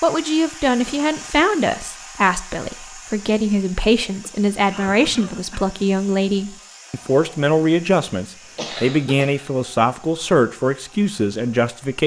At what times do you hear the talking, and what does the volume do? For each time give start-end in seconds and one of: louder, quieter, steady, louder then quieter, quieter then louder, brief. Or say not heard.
0.0-12.0 steady.